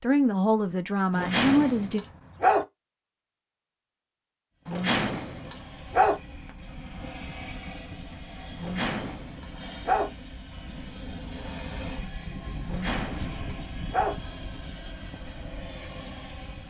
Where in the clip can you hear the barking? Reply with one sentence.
You can hear the barking from 1.1 to 2.6 s, from 4.7 to 6.2 s, from 8.6 to 10.1 s and from 12.7 to 14.2 s.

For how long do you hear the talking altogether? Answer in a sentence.
The talking can be heard for 2 seconds in total.